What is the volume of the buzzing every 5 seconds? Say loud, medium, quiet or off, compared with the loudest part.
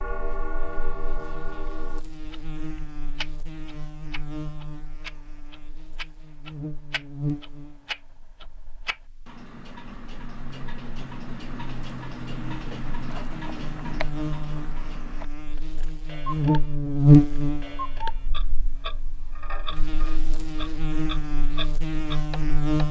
quiet, quiet, quiet, loud, medium.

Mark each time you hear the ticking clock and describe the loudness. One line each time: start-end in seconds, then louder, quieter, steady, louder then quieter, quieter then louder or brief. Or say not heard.
0.0-22.8 steady.